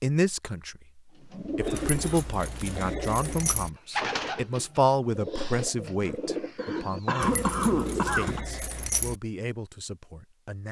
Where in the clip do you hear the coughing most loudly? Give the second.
8 s.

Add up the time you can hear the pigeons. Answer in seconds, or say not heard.
7 s.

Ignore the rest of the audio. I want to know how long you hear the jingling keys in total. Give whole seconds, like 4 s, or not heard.
4 s.